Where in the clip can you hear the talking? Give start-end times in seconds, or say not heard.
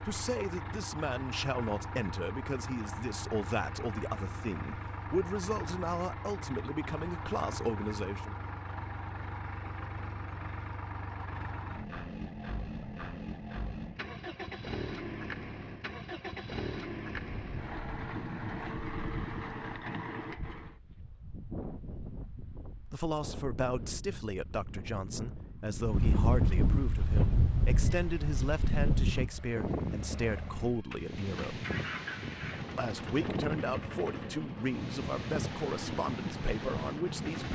0.0-8.3, 22.9-31.6, 32.8-37.4.